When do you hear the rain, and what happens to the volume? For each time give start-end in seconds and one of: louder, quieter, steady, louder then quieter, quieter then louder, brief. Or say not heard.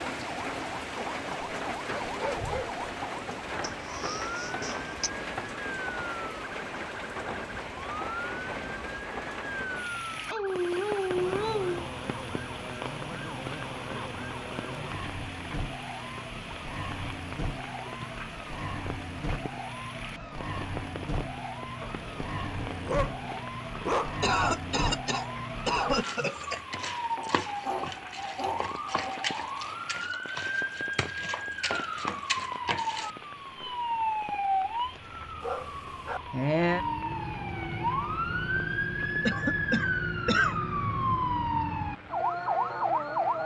0.0-43.4 quieter.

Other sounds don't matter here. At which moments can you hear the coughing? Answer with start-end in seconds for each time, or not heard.
3.6-5.1, 24.2-26.6, 39.2-40.5.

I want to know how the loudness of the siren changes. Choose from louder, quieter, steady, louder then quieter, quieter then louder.
louder.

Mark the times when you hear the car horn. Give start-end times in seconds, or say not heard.
not heard.